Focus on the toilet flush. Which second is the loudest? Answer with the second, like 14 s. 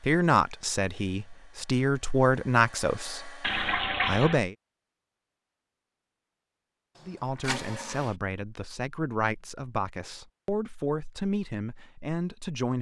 4 s.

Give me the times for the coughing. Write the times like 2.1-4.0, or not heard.
not heard.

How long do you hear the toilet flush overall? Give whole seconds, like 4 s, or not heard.
2 s.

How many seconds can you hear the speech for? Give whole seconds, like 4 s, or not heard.
10 s.